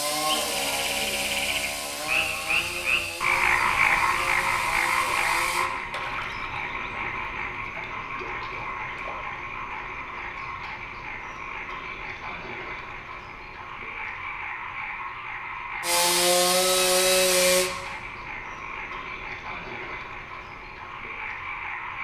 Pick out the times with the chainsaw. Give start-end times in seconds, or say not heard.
0.0-5.7, 15.8-17.7.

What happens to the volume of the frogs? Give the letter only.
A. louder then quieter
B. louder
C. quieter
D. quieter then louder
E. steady
C.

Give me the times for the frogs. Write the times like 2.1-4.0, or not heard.
0.1-21.9.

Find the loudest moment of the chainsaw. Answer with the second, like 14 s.
17 s.